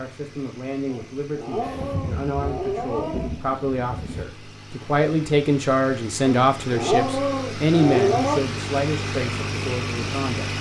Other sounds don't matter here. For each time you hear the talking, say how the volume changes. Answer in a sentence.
You can hear the talking from 0.0 to 10.5 s, getting louder then quieter.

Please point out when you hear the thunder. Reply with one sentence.
The thunder can be heard from 1.6 to 4.2 s.